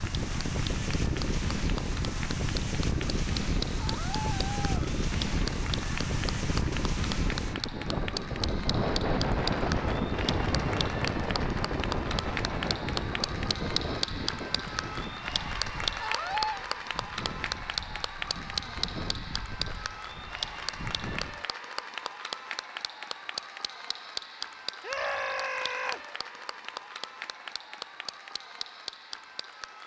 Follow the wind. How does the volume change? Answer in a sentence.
The volume of the wind goes down.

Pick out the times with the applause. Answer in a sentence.
The applause can be heard from 0.0 to 29.8 s.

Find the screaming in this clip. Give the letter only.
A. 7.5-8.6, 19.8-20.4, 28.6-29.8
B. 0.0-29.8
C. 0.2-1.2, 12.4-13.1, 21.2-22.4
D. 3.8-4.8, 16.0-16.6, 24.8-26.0
D.